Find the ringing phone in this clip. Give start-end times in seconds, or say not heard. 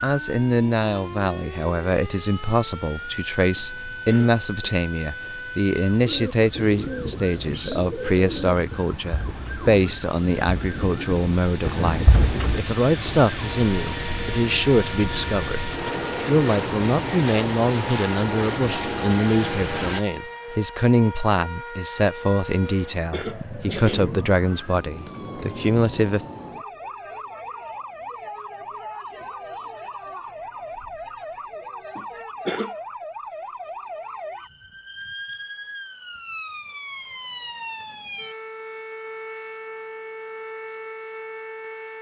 not heard.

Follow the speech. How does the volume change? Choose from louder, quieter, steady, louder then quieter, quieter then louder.
steady.